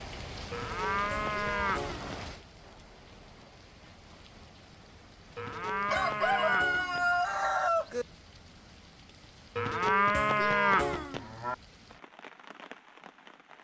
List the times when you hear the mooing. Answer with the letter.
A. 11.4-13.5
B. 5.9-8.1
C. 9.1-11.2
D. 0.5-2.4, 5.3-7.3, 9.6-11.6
D.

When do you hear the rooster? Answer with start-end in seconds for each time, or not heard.
5.9-8.1.